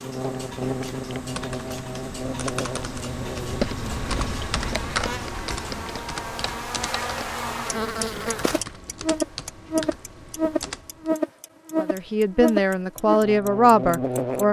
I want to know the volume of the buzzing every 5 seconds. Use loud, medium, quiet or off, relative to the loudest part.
medium, loud, loud.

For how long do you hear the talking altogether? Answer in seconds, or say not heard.
3 s.